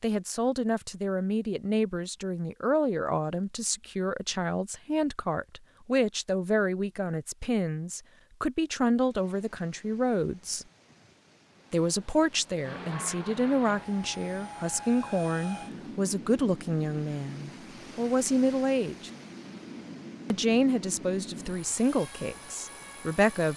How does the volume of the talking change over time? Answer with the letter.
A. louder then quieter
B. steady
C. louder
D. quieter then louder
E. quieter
B.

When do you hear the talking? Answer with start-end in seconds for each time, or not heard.
0.0-10.7, 11.7-19.1, 20.3-23.5.